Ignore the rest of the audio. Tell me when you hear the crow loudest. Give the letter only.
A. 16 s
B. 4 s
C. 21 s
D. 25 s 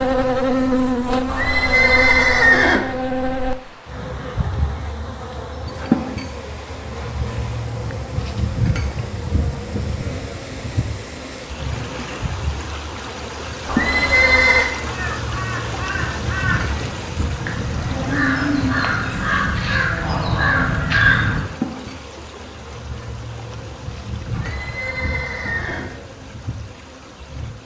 C.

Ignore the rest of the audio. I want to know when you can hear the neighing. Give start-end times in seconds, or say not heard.
1.2-2.8, 13.7-14.7, 24.3-25.9.